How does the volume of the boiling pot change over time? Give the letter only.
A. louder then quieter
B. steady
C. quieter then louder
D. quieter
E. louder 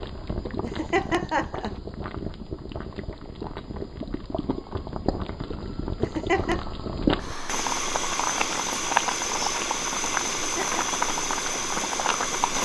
E.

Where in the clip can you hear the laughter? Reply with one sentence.
The laughter can be heard from 0.6 to 1.8 s, from 6.0 to 6.6 s and from 10.4 to 11.0 s.